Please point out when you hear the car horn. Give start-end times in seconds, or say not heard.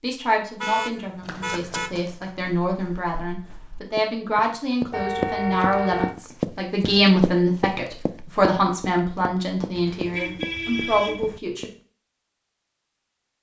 0.6-2.0, 4.9-6.2, 9.8-11.4.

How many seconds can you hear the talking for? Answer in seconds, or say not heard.
12 s.